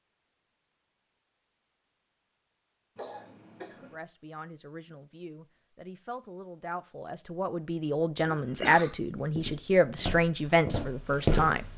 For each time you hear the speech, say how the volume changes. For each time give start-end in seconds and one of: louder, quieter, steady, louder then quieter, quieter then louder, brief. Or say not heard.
3.8-11.7 louder.